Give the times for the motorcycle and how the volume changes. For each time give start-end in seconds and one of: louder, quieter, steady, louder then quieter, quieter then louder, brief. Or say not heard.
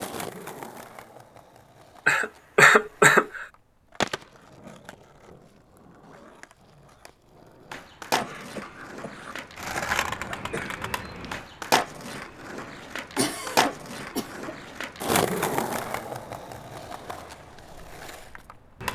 not heard.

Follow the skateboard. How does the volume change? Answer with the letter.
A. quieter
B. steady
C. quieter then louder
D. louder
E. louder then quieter
D.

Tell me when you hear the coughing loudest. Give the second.
3 s.